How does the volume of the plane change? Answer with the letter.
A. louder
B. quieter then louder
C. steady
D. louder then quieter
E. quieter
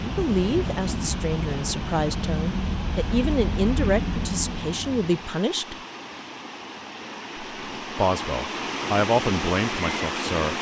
C.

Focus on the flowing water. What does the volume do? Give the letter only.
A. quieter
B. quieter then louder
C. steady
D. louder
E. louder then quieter
D.